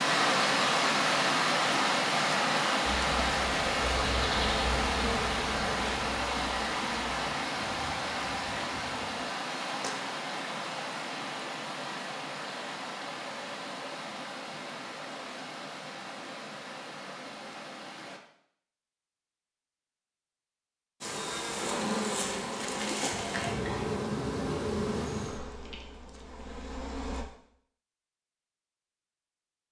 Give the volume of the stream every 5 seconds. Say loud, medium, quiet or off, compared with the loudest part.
loud, medium, medium, quiet, off, off.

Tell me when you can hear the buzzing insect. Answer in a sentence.
The buzzing insect can be heard from 3.0 to 9.3 s and from 21.0 to 27.2 s.